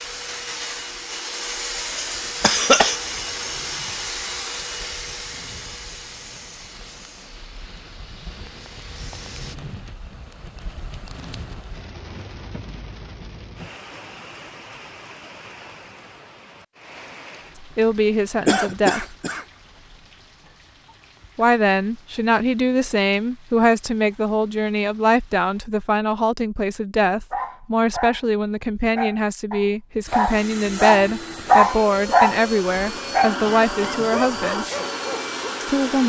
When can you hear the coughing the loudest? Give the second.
3 s.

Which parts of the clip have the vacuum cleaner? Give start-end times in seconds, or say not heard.
0.0-9.6, 30.1-36.0.